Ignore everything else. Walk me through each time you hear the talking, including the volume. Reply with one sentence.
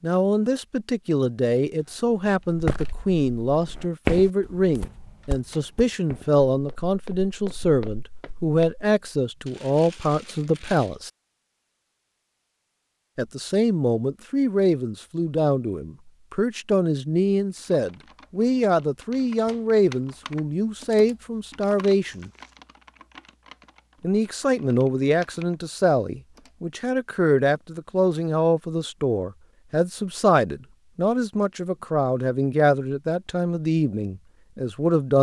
The talking can be heard from 0.0 to 11.1 s, at a steady volume; from 13.2 to 22.3 s, at a steady volume; and from 24.0 to 35.1 s, at a steady volume.